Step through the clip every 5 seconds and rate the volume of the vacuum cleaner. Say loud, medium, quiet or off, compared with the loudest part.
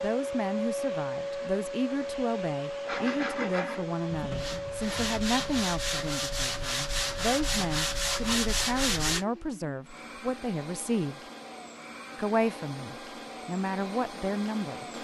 loud, medium, medium.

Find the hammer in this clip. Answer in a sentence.
The hammer can't be heard in this clip.